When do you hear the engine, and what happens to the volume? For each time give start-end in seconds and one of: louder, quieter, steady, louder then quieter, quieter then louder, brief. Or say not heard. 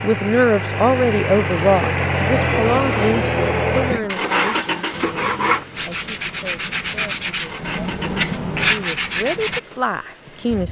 0.0-10.6 quieter.